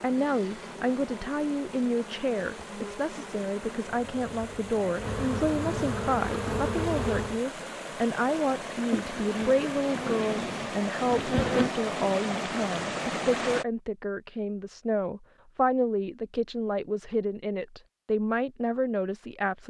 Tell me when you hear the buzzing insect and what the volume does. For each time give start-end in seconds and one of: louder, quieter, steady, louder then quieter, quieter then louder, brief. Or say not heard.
0.0-7.4 louder
8.9-11.8 brief.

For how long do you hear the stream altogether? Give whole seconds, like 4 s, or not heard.
14 s.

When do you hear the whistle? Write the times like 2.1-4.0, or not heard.
not heard.